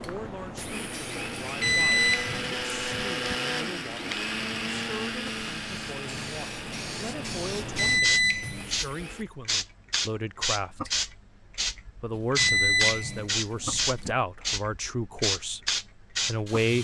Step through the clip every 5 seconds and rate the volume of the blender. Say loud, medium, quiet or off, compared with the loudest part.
loud, medium, off, off.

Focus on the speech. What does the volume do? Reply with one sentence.
The volume of the speech goes up.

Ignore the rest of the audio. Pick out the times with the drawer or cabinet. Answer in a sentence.
The drawer or cabinet can't be heard in this clip.